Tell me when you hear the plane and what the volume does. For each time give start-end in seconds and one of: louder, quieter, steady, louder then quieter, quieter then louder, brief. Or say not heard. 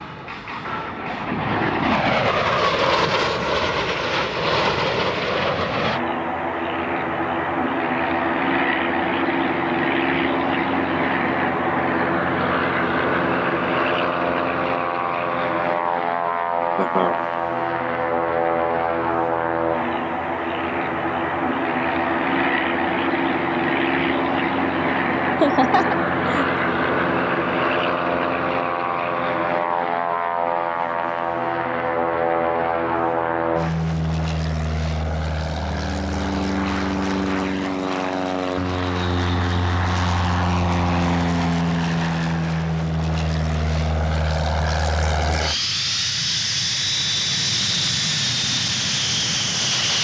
0.0-49.9 steady.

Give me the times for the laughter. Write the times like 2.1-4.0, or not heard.
16.8-17.2, 25.4-26.5.